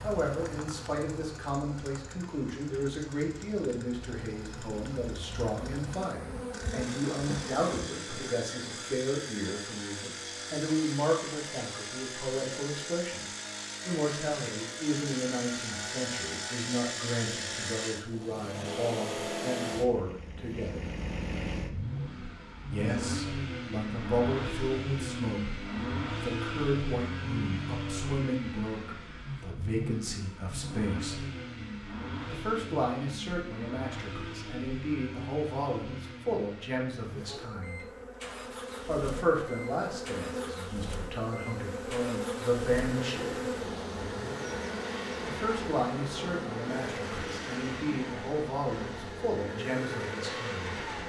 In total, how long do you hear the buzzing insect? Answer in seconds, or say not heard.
23 s.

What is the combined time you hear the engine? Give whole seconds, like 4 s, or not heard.
51 s.